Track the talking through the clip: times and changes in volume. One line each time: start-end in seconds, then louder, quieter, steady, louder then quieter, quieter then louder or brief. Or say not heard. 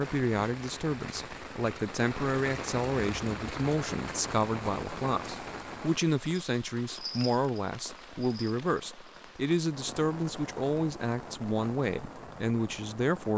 0.0-13.3 steady.